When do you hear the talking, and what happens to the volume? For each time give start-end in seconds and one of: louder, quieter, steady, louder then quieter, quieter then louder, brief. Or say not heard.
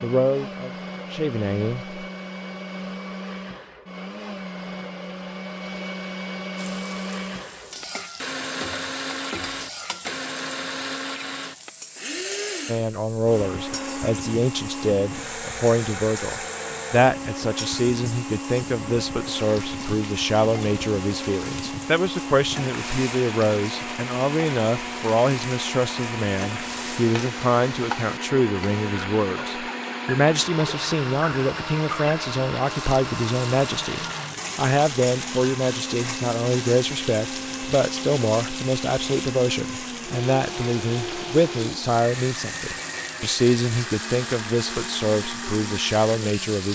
0.0-2.0 brief
12.7-46.6 steady.